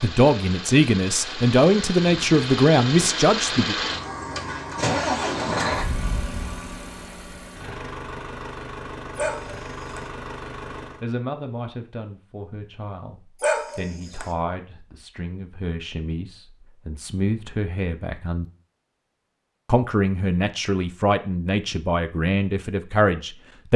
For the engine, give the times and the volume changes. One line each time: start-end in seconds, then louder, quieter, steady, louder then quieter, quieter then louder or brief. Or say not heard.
0.0-11.1 louder then quieter.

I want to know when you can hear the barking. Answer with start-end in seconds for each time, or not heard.
9.2-10.0, 13.4-14.2.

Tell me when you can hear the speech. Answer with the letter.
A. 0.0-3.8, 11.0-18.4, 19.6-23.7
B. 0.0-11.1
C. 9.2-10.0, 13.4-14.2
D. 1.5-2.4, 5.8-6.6
A.